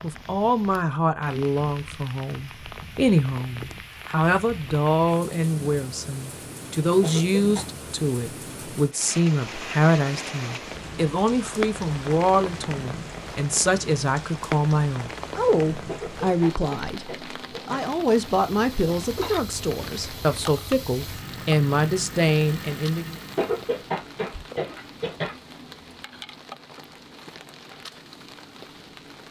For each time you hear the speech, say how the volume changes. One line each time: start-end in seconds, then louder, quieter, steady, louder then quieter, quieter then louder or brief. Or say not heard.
0.0-23.1 steady.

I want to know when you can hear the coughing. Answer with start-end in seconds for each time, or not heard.
7.0-7.7, 15.8-17.9, 23.4-25.4.